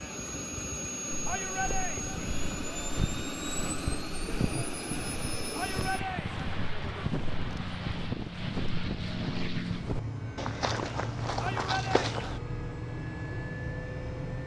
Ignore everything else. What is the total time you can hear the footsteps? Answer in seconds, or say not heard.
11 s.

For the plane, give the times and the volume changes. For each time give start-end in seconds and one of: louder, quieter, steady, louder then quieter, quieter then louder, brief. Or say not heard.
0.0-14.4 steady.